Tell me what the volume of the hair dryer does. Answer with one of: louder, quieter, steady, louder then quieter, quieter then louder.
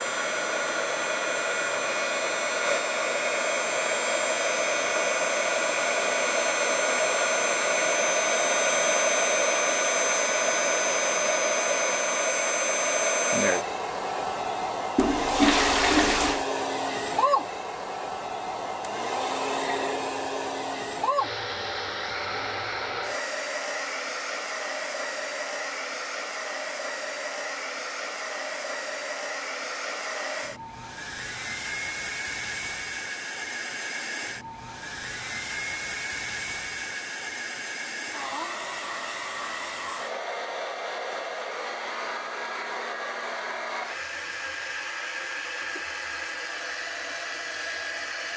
quieter.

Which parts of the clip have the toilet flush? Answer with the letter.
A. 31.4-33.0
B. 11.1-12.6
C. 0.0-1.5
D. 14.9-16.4
D.